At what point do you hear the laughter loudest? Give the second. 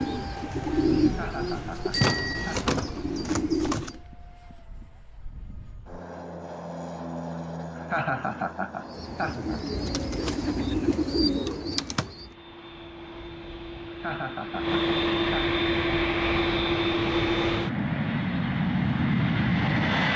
8 s.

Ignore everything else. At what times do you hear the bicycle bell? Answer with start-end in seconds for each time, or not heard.
1.9-2.6.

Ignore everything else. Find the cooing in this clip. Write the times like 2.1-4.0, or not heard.
0.0-4.0, 8.8-12.3.